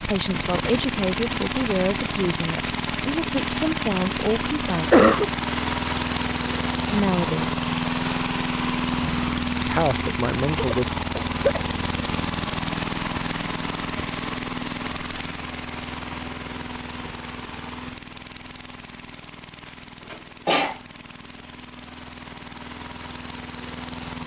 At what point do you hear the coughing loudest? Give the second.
5 s.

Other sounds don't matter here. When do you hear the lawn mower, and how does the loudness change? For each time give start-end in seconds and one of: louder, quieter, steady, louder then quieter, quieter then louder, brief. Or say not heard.
0.0-24.2 quieter.